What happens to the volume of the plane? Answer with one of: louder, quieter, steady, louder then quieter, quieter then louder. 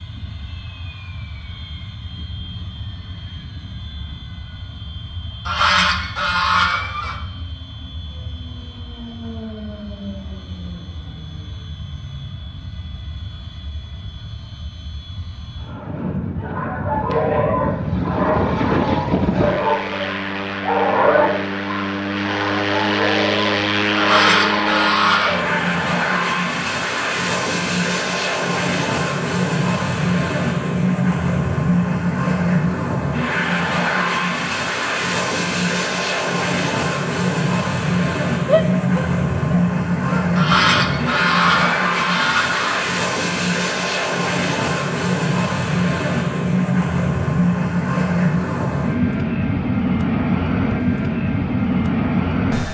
louder.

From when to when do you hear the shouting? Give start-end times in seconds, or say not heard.
38.5-40.3.